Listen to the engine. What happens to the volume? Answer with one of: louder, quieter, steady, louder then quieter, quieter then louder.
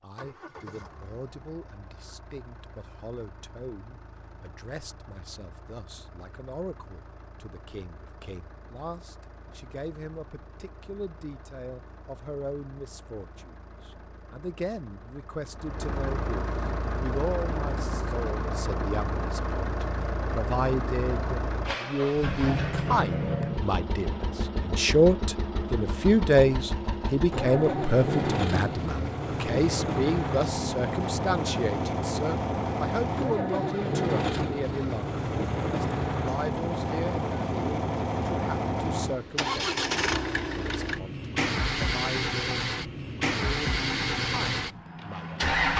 louder.